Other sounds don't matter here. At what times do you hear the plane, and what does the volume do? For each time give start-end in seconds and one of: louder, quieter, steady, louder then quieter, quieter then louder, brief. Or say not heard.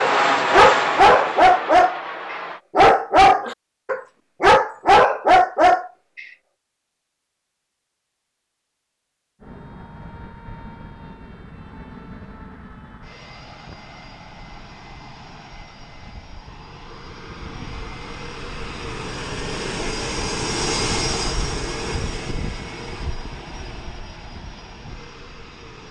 0.0-2.6 brief
9.4-25.8 louder then quieter.